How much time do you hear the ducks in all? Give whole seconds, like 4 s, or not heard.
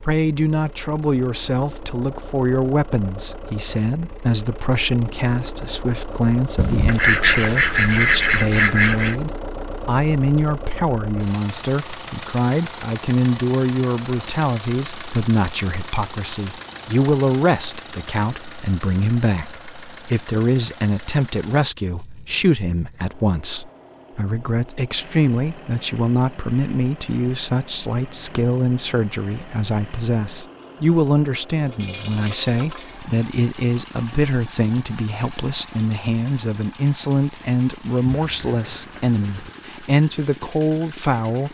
4 s.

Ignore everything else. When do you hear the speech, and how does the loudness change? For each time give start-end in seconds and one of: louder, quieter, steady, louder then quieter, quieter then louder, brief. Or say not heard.
0.0-41.4 steady.